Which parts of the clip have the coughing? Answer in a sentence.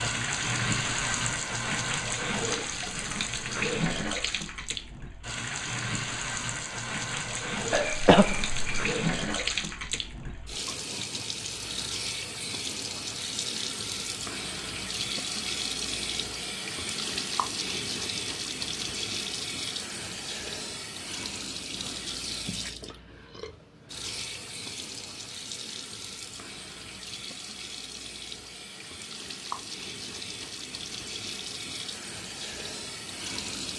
The coughing can be heard from 7.7 to 8.9 s.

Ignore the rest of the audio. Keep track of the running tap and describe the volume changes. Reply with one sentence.
The loudness of the running tap goes down.